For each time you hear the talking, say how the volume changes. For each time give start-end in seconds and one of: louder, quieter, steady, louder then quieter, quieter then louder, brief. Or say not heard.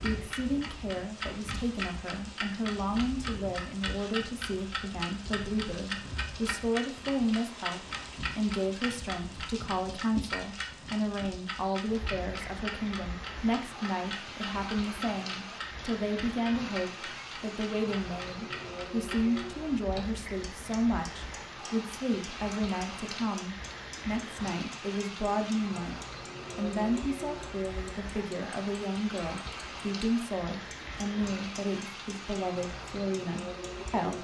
0.0-34.1 steady.